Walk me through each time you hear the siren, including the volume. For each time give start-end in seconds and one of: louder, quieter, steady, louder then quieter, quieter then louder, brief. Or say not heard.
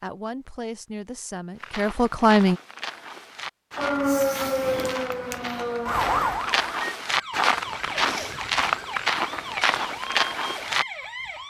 3.8-11.4 quieter.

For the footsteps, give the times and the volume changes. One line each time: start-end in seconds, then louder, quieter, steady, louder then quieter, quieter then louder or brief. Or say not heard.
1.6-10.8 louder.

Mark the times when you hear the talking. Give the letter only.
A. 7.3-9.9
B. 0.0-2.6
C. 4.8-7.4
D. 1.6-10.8
B.